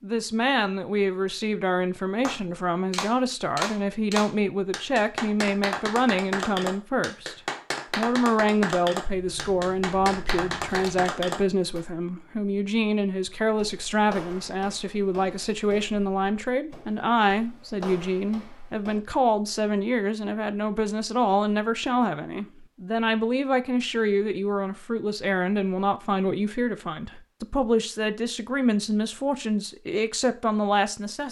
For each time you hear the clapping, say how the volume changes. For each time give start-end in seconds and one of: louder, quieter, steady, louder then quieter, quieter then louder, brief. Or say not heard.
2.2-11.8 steady.